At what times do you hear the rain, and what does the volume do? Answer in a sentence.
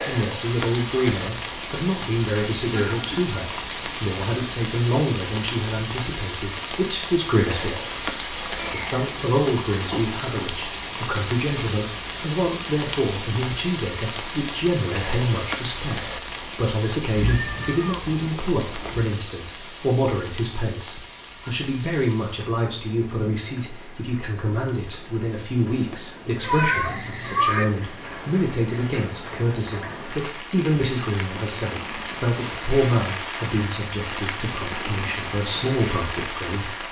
The rain can be heard from 0.0 to 36.8 s, getting quieter then louder.